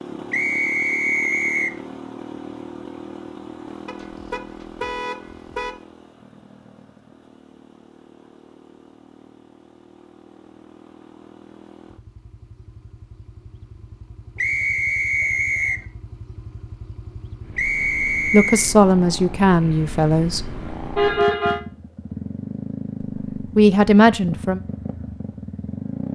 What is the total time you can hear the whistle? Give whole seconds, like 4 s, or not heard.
4 s.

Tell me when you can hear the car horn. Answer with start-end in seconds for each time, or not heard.
3.9-5.8, 20.9-21.6.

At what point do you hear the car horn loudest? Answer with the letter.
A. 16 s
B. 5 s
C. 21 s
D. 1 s
C.